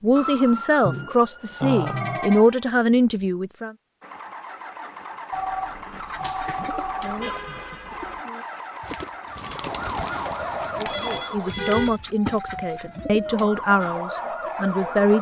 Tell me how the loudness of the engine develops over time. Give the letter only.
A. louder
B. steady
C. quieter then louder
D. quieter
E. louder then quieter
B.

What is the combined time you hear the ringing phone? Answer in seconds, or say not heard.
6 s.